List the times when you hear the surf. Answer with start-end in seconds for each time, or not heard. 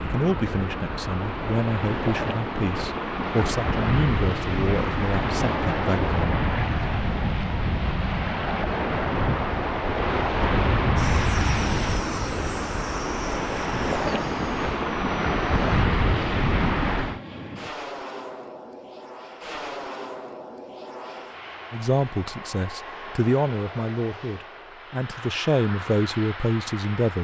0.0-17.2.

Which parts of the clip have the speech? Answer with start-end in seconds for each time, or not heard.
0.0-6.4, 21.7-27.1.